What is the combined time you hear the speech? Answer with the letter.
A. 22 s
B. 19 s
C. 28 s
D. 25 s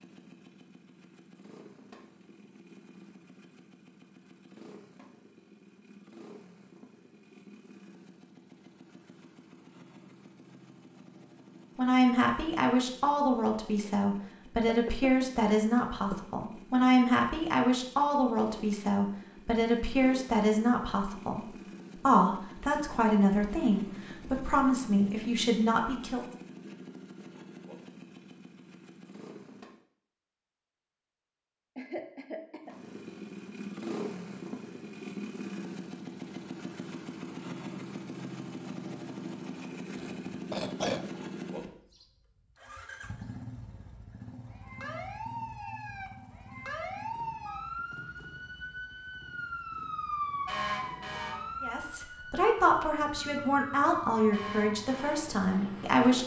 B.